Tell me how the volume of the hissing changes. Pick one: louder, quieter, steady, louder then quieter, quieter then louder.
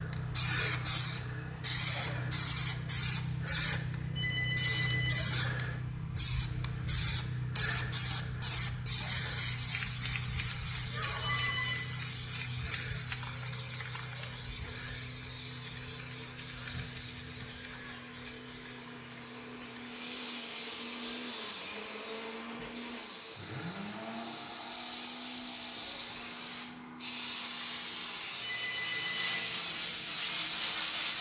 quieter then louder.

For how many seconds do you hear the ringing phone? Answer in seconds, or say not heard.
3 s.